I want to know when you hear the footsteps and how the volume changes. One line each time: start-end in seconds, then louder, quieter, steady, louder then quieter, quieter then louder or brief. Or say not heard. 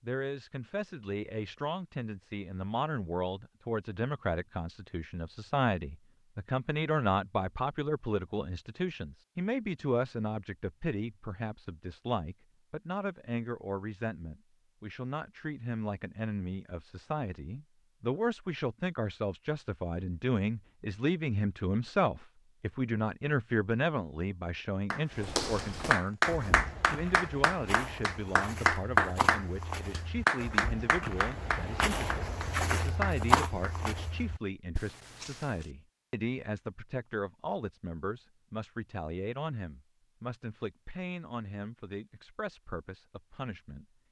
25.1-35.6 louder.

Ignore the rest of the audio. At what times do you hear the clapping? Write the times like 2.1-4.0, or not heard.
24.9-33.7.